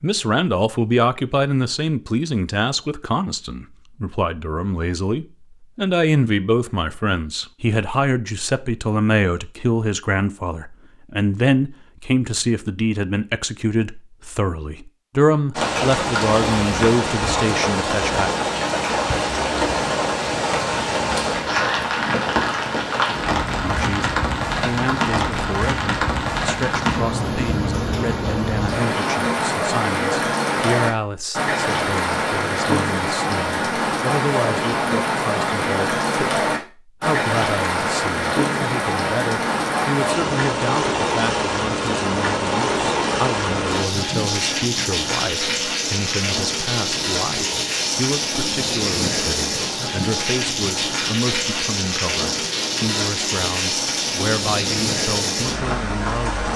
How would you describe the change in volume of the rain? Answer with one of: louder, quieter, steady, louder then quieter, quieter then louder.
steady.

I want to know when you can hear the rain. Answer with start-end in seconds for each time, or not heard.
15.5-56.5.